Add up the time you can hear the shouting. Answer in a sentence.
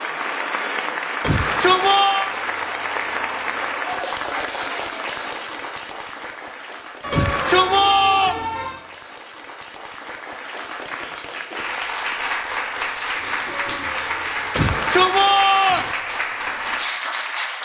You can hear the shouting for 4 seconds altogether.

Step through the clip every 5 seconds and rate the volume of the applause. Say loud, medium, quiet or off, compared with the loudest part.
loud, medium, loud, loud.